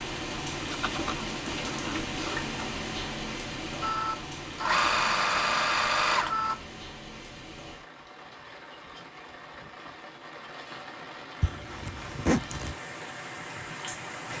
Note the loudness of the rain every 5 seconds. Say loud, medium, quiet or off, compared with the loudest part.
loud, medium, medium.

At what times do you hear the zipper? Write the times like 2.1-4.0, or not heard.
0.7-2.5, 11.4-12.8.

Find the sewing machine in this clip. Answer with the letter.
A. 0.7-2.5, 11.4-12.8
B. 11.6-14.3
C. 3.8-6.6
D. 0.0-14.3
C.